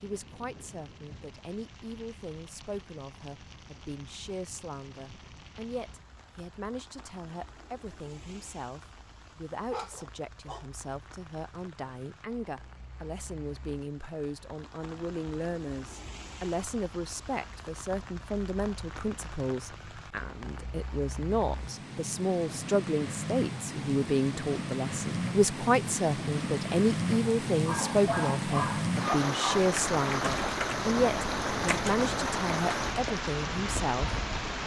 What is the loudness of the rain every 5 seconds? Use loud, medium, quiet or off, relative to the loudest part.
quiet, quiet, quiet, quiet, medium, loud, loud.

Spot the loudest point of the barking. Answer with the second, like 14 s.
29 s.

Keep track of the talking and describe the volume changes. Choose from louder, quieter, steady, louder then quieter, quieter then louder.
louder.